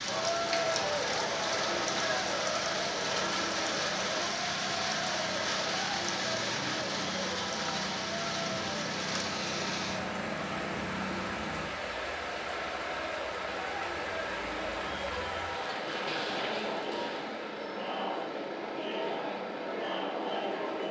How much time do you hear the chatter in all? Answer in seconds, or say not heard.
21 s.